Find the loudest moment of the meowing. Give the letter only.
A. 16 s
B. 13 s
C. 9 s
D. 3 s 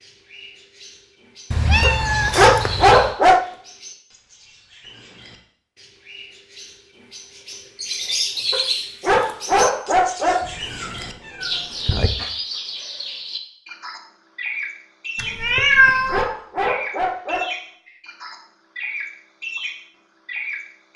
A.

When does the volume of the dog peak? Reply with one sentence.
The volume of the dog peaks at 3 seconds.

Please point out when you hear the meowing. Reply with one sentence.
You can hear the meowing from 1.5 to 3.1 s, from 10.4 to 12.1 s and from 15.2 to 16.2 s.